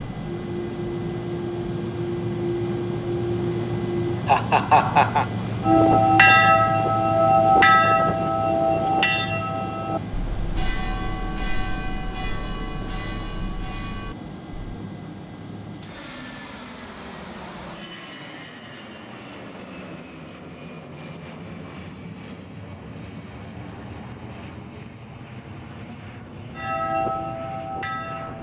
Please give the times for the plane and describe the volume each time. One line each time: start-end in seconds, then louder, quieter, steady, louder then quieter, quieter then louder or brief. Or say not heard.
0.0-28.3 quieter.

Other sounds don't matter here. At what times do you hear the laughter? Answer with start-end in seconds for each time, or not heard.
4.2-5.2.